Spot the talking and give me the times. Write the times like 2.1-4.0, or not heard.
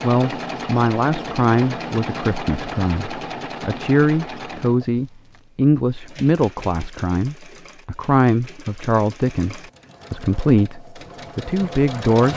0.0-12.3.